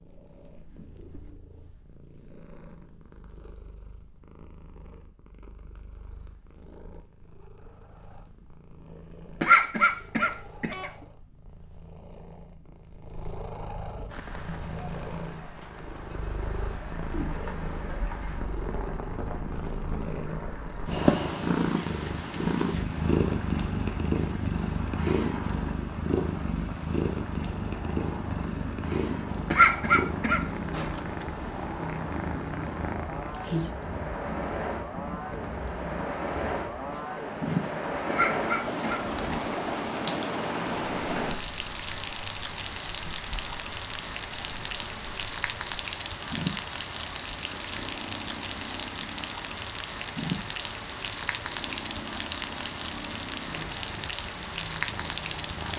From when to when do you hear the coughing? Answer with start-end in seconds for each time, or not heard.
9.4-10.9, 29.5-30.4, 38.0-39.5.